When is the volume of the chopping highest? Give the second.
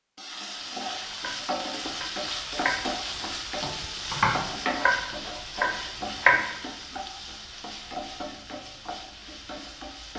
6 s.